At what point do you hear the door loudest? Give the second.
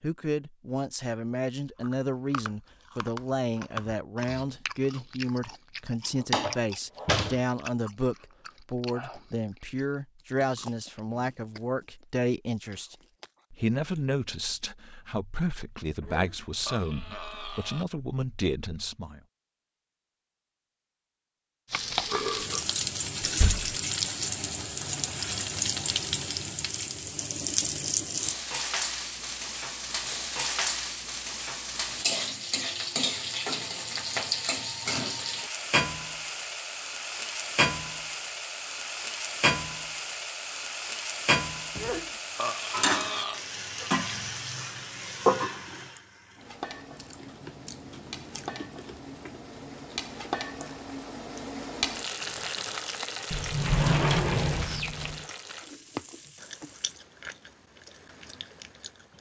54 s.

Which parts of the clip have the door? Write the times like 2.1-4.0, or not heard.
6.2-7.4, 23.2-23.8, 53.3-55.2.